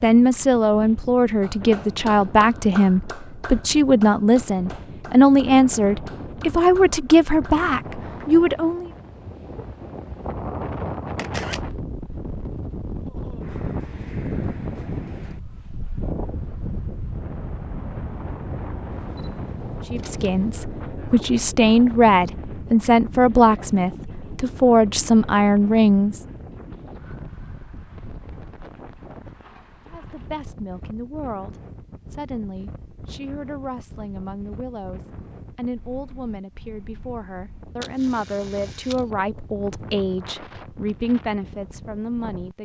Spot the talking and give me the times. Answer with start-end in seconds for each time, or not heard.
0.0-8.9, 19.9-26.2, 29.9-42.6.